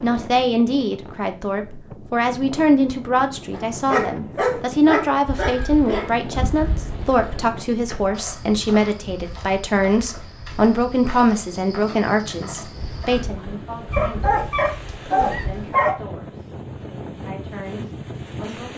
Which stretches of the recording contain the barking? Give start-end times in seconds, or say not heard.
3.5-6.1, 13.9-15.9.